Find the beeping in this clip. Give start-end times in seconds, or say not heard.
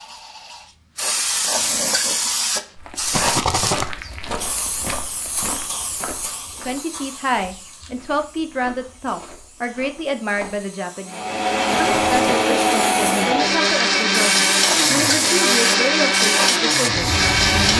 not heard.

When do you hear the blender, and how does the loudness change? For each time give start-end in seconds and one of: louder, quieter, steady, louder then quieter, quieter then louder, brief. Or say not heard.
11.1-17.7 steady.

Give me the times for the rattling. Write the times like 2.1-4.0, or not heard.
3.1-3.9, 11.7-12.4.